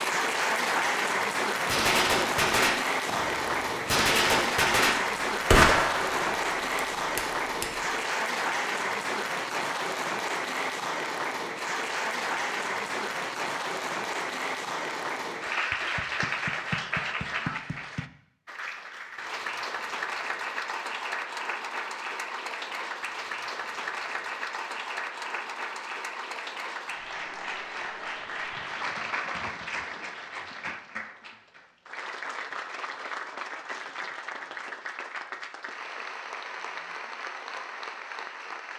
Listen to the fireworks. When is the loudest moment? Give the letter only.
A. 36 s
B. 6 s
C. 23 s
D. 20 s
B.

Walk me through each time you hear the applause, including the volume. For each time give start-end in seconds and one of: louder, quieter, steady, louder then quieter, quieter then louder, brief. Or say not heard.
0.0-38.7 quieter.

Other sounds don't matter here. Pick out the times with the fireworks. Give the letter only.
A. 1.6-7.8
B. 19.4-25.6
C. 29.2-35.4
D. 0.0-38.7
A.